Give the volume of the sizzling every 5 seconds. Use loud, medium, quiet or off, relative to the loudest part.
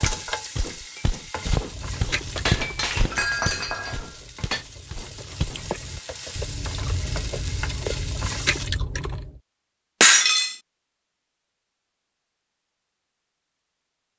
loud, loud, off.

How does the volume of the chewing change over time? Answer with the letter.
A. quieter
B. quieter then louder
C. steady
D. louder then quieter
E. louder
B.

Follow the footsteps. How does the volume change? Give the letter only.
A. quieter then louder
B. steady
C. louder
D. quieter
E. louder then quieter
E.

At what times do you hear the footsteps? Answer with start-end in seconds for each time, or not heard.
0.0-5.7.